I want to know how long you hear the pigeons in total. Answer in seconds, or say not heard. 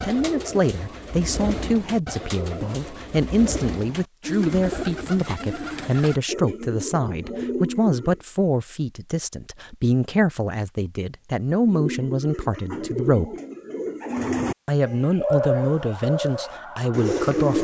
14 s.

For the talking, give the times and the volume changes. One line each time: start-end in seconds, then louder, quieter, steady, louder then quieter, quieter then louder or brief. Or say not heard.
0.0-13.3 steady
14.7-17.5 brief.